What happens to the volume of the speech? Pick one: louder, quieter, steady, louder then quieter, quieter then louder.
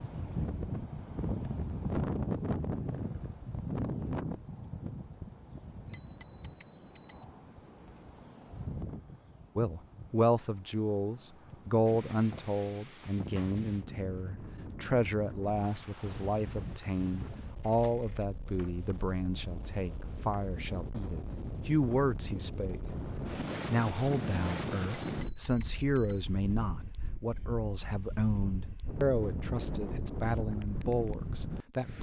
steady.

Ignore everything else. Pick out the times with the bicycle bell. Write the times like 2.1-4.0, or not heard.
5.9-7.2, 25.0-26.2.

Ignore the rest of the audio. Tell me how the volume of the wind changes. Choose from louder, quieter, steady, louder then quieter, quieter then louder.
quieter then louder.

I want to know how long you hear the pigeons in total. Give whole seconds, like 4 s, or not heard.
not heard.